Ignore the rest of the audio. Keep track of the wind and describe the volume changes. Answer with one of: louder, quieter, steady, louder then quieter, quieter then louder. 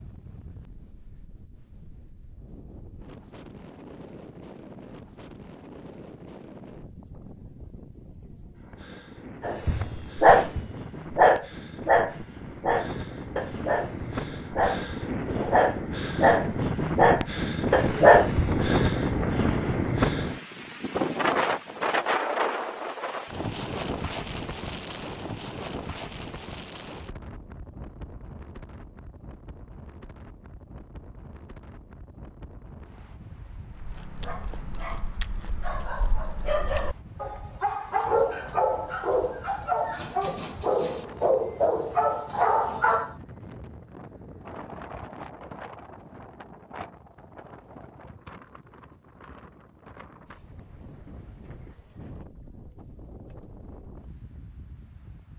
louder then quieter.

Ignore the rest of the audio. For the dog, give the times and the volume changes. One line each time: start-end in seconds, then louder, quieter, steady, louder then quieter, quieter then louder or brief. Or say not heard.
9.4-18.7 quieter then louder
33.7-43.1 louder.